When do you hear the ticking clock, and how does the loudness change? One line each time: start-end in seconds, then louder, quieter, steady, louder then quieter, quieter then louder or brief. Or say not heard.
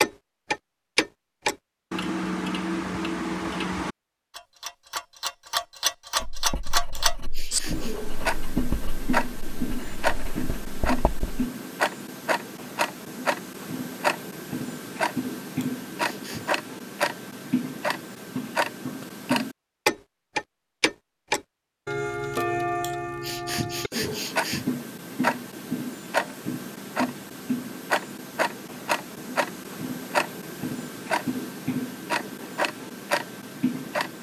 0.0-34.1 steady.